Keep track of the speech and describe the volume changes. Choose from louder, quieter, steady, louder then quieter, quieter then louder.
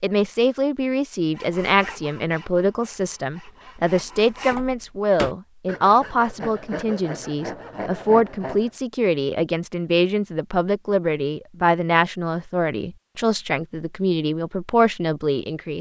steady.